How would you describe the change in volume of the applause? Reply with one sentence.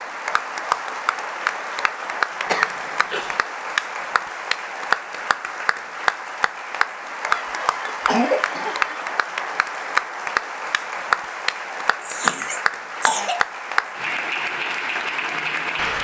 The volume of the applause stays about the same.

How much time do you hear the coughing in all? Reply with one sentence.
You can hear the coughing for 4 seconds altogether.